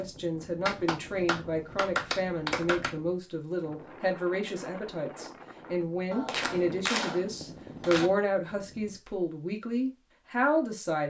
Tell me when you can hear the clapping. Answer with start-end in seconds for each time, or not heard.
0.7-3.0, 6.1-8.1.